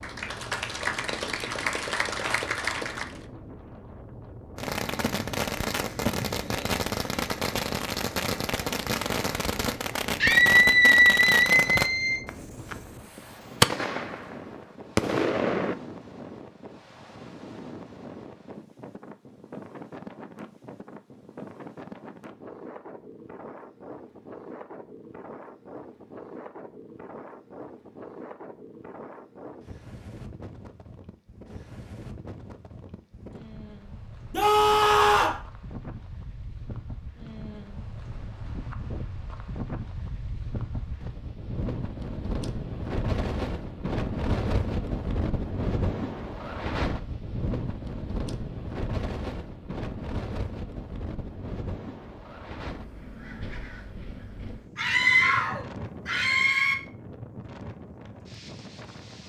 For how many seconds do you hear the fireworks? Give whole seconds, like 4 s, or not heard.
11 s.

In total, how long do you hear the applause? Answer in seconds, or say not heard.
3 s.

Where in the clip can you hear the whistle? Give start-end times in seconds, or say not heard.
not heard.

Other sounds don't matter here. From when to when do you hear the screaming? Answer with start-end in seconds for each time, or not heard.
10.2-12.2, 34.3-35.4, 54.8-56.8.